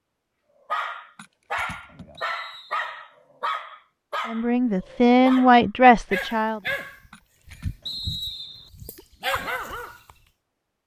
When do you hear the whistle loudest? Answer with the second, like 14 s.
8 s.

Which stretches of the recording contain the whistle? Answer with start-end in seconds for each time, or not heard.
2.1-2.9, 7.8-8.7.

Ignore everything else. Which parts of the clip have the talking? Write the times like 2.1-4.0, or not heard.
4.2-6.6.